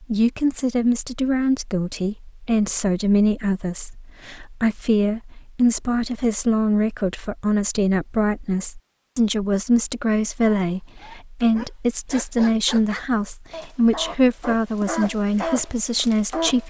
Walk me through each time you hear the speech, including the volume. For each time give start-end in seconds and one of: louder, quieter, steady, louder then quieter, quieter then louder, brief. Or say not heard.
0.0-16.6 steady.